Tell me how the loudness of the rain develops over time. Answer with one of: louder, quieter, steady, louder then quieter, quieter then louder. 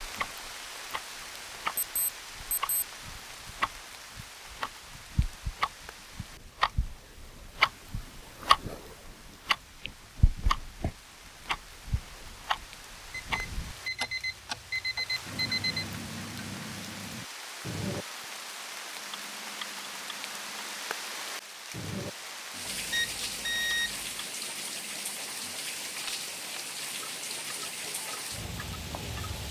quieter then louder.